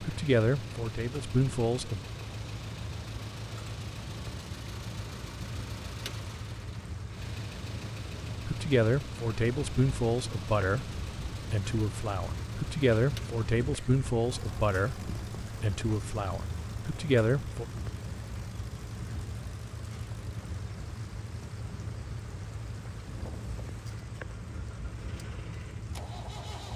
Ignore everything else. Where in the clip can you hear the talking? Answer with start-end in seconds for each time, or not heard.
0.0-2.0, 8.4-17.6.